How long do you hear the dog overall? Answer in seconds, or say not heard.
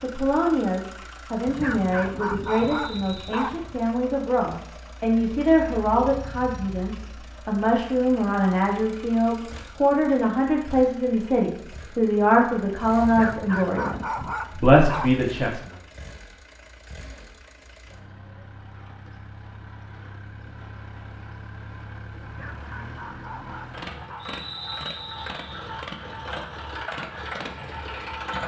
7 s.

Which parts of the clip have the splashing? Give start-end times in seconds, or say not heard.
not heard.